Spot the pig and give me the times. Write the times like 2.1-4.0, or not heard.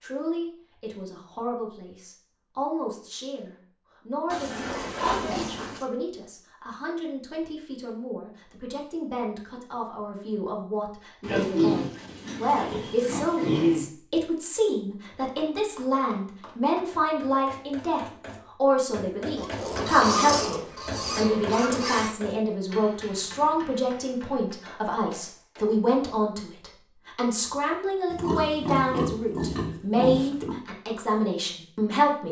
4.3-5.8, 11.2-13.8, 19.4-22.1, 28.1-30.6.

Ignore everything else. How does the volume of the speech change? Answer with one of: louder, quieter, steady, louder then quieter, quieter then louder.
louder.